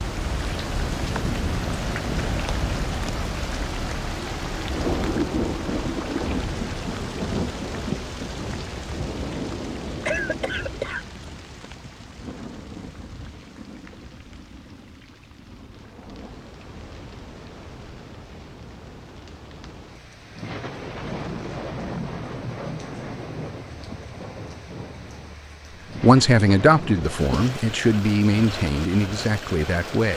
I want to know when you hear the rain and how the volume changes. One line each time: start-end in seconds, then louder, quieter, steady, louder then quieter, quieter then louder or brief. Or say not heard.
0.0-30.1 quieter then louder.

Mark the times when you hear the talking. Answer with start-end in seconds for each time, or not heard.
26.0-30.1.